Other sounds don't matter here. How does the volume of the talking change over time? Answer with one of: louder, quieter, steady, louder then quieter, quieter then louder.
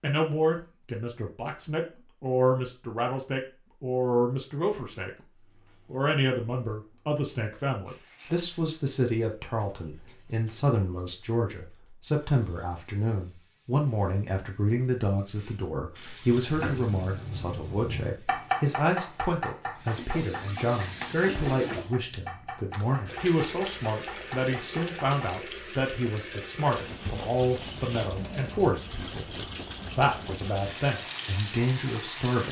steady.